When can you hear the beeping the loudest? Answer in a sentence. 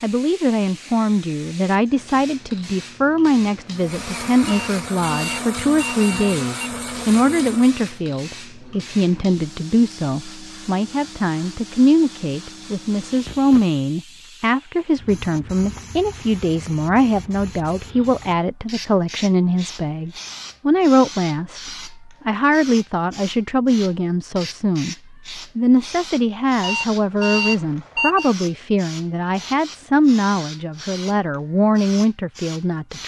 The volume of the beeping peaks at 27 seconds.